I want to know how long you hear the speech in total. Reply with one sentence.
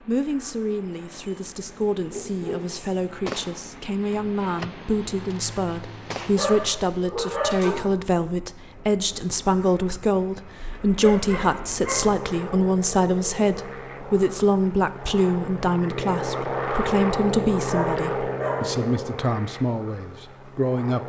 You can hear the speech for 21 seconds altogether.